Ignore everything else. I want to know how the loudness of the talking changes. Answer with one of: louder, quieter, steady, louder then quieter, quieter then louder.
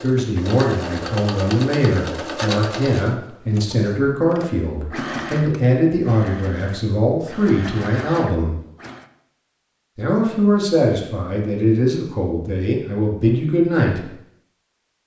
steady.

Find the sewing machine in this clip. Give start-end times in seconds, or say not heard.
0.0-9.1.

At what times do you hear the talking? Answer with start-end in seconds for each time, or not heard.
0.0-8.6, 9.9-14.0.